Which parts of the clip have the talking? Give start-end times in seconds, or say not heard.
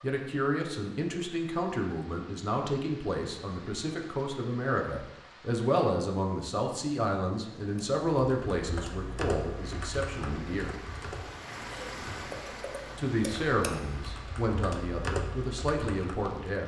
0.0-10.8, 12.9-16.6.